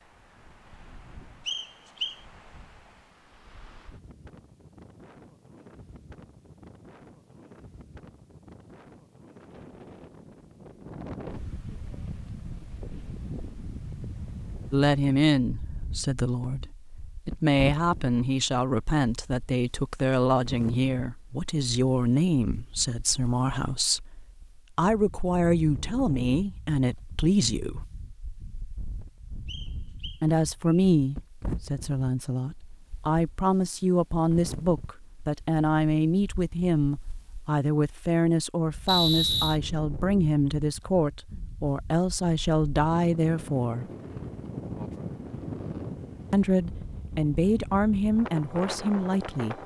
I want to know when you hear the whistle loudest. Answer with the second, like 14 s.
39 s.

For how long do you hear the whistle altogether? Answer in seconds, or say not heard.
3 s.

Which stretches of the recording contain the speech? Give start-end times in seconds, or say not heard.
14.7-27.9, 30.2-43.9, 46.3-49.5.